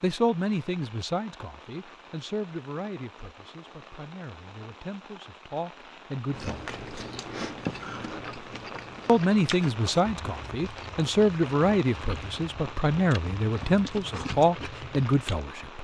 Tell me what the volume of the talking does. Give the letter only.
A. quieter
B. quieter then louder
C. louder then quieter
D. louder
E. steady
B.